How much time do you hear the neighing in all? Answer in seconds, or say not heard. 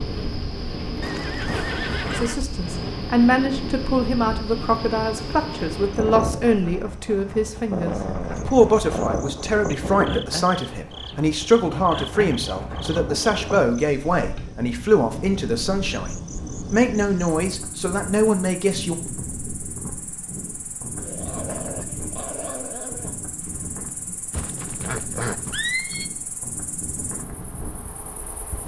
3 s.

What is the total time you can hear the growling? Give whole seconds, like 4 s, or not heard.
4 s.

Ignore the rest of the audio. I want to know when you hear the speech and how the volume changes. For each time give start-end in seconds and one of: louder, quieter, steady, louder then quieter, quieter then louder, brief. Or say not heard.
2.1-18.9 steady.